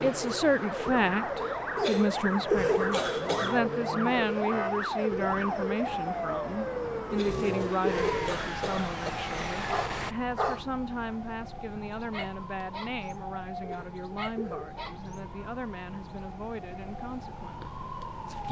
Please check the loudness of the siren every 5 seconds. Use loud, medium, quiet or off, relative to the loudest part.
loud, loud, medium, medium.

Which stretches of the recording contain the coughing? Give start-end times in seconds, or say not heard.
1.8-3.6, 7.1-9.1, 13.6-14.7.